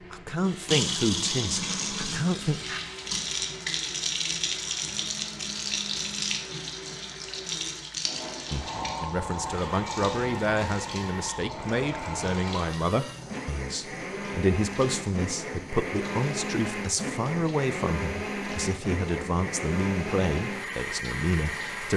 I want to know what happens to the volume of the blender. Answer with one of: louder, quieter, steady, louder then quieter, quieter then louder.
louder.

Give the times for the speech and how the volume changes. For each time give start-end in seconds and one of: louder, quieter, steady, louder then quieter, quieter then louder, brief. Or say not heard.
0.1-2.8 brief
8.5-21.9 steady.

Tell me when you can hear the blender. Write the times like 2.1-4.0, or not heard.
0.0-21.9.